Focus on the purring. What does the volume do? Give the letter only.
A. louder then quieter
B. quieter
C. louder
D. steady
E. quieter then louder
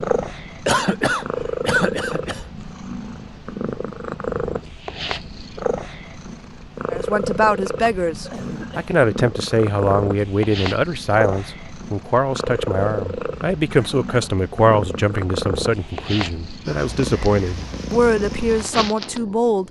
D.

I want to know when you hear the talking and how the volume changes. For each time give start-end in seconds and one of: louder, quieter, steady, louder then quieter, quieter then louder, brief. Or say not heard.
6.9-19.6 steady.